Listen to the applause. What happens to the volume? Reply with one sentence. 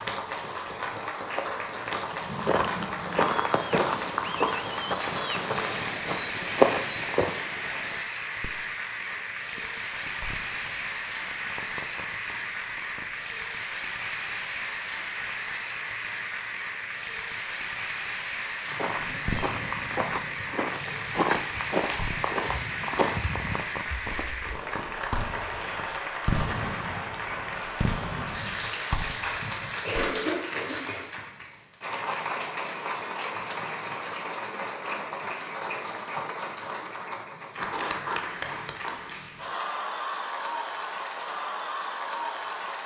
The volume of the applause stays about the same.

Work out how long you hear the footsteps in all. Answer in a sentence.
The footsteps can be heard for 12 seconds in total.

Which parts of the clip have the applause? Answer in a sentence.
You can hear the applause from 0.0 to 42.8 s.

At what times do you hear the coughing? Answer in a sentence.
The coughing can be heard from 29.2 to 31.1 s.